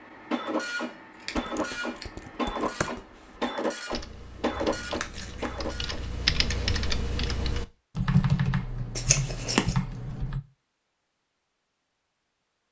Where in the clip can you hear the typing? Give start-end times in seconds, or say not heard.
1.3-10.4.